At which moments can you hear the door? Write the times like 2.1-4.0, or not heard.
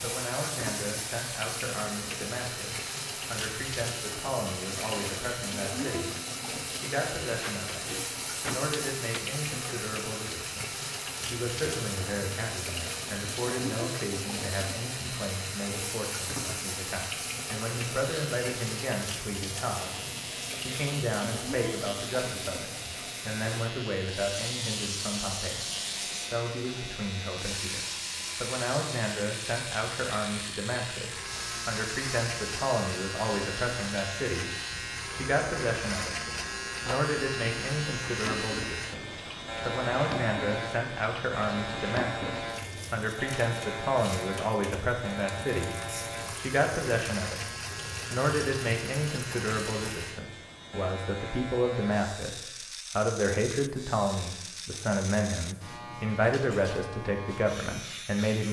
7.4-9.2.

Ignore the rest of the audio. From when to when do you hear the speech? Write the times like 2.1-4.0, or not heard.
0.0-58.4.